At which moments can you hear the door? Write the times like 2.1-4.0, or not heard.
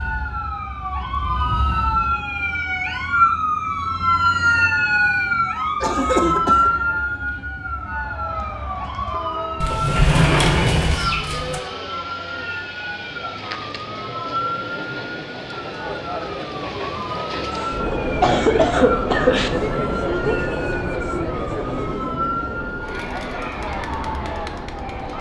9.6-11.6.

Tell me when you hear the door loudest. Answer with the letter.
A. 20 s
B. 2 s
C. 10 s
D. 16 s
C.